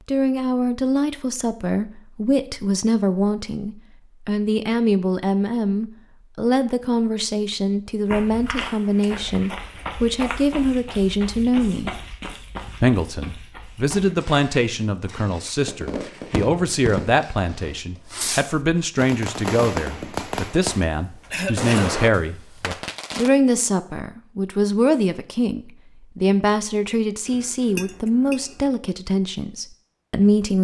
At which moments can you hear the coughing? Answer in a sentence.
You can hear the coughing from 20.8 to 22.0 s.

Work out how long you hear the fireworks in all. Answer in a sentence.
The fireworks can be heard for 8 seconds in total.